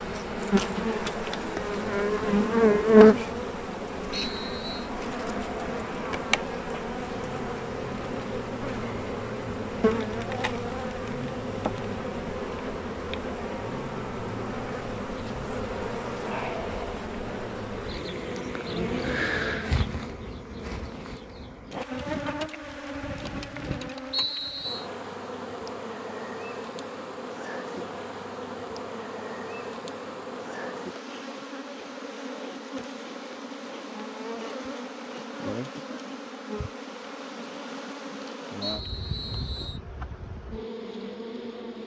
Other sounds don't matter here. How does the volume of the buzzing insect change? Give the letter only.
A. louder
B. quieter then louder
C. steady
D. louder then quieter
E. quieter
E.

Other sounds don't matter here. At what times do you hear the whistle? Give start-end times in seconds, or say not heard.
4.1-4.9, 24.1-24.9, 38.6-39.8.